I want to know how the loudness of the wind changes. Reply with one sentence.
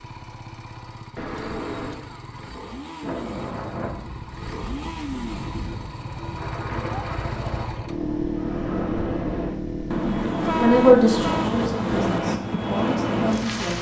The volume of the wind goes up.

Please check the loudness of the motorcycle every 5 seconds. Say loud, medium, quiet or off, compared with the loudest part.
medium, loud, loud.